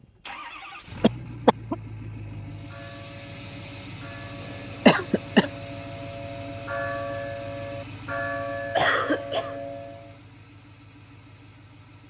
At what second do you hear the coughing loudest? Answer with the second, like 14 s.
5 s.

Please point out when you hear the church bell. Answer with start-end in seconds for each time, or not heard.
2.3-10.2.